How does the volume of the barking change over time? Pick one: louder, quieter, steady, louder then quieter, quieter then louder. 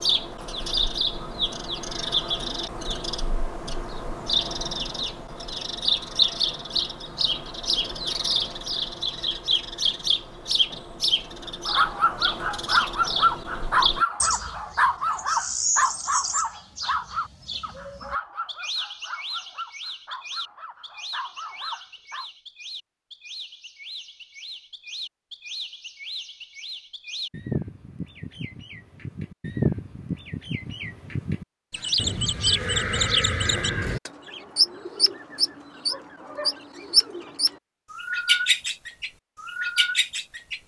quieter.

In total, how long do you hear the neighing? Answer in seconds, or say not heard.
2 s.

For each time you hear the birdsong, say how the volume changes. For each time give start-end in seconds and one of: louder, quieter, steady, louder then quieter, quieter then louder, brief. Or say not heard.
0.0-40.6 quieter then louder.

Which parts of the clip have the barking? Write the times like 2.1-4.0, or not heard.
11.7-22.2.